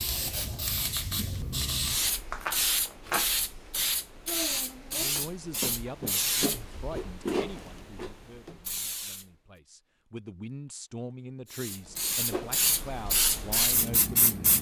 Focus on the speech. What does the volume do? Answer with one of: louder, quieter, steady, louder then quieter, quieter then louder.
quieter then louder.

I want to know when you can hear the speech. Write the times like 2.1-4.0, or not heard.
4.9-14.5.